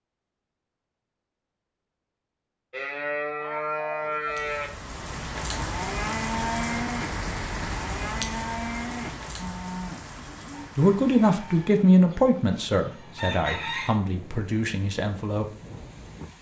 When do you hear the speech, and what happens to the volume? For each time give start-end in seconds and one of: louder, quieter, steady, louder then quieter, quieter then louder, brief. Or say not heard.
10.8-15.4 quieter.